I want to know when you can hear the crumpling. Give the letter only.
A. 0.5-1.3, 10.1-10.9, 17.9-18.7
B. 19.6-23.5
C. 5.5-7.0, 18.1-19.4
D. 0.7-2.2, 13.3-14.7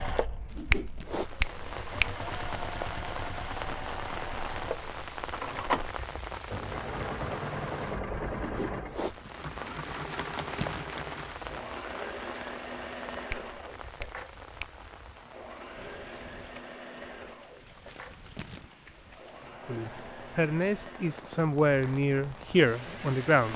A.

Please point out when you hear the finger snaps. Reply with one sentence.
The finger snaps can be heard from 0.7 to 2.2 s and from 13.3 to 14.7 s.